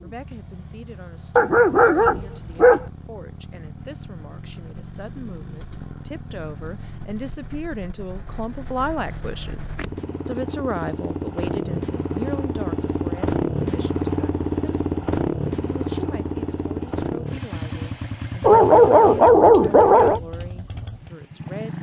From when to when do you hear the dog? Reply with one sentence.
You can hear the dog from 1.4 to 2.9 s and from 18.4 to 20.2 s.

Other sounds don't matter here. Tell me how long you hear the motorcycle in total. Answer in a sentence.
The motorcycle can be heard for 22 seconds in total.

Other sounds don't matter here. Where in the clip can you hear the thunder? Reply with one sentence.
You can't hear the thunder here.